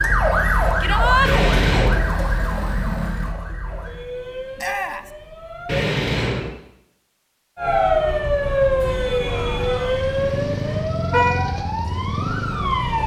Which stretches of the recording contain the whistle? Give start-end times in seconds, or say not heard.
not heard.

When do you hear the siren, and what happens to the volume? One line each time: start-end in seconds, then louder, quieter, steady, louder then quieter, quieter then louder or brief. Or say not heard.
0.0-5.8 quieter
7.5-13.0 quieter.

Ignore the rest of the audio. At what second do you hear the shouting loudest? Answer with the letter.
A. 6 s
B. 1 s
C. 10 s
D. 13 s
B.